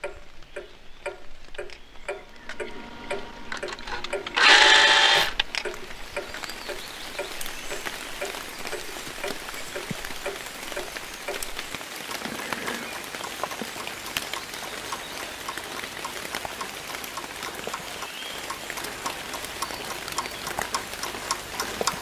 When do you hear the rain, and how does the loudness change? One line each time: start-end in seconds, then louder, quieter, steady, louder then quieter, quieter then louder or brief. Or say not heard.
0.0-21.9 louder.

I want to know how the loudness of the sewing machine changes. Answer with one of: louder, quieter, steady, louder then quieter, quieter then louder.
louder then quieter.